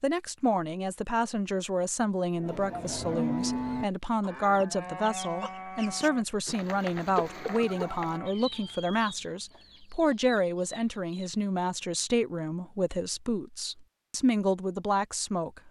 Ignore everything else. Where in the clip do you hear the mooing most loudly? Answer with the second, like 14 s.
3 s.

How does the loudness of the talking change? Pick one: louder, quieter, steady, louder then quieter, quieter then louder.
steady.